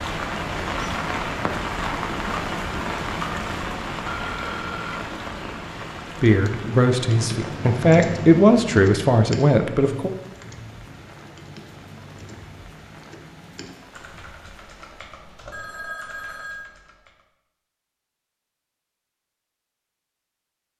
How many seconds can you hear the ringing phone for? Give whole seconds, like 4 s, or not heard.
2 s.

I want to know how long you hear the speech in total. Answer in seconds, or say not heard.
4 s.